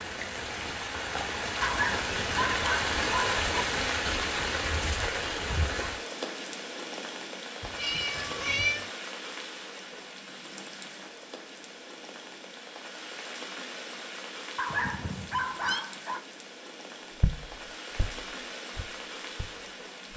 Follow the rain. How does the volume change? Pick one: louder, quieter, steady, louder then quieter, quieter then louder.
quieter.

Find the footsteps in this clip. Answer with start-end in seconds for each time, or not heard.
17.2-20.1.